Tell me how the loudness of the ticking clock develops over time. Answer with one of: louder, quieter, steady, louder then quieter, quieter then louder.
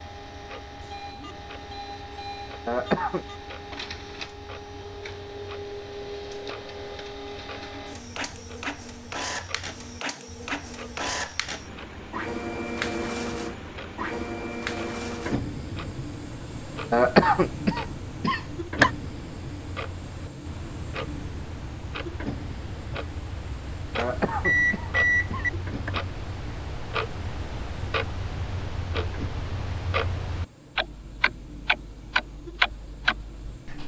louder.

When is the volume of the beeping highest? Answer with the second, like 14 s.
25 s.